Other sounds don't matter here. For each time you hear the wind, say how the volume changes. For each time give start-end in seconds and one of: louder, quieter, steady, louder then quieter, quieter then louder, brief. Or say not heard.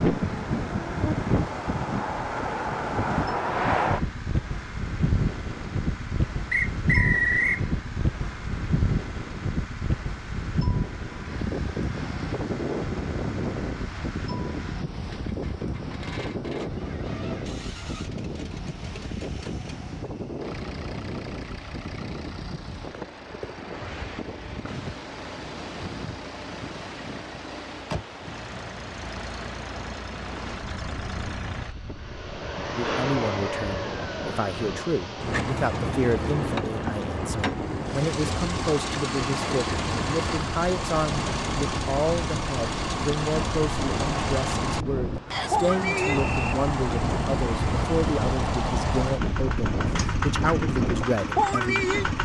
0.0-52.2 quieter then louder.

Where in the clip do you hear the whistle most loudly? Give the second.
7 s.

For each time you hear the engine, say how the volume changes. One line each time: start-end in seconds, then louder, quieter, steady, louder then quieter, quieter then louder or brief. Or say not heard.
0.0-52.2 louder.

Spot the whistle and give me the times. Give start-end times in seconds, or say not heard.
6.5-7.7, 45.3-46.5.